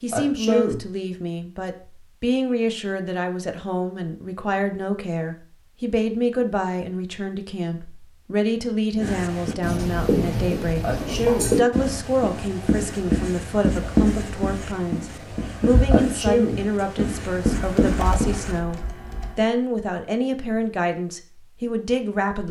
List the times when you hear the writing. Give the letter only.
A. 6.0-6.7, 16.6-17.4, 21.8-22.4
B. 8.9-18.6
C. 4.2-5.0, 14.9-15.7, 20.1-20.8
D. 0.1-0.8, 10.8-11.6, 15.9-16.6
B.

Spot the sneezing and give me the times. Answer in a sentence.
You can hear the sneezing from 0.1 to 0.8 s, from 10.8 to 11.6 s and from 15.9 to 16.6 s.